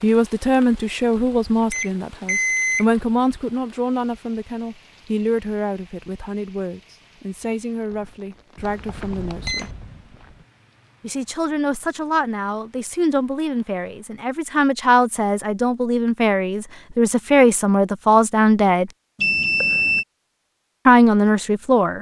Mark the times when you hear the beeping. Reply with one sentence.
You can hear the beeping from 1.7 to 2.9 s, from 8.6 to 9.7 s and from 19.1 to 20.1 s.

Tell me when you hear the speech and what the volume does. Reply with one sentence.
You can hear the speech from 0.0 to 9.8 s, getting quieter; from 11.0 to 18.9 s, getting louder; and briefly from 20.9 to 21.9 s.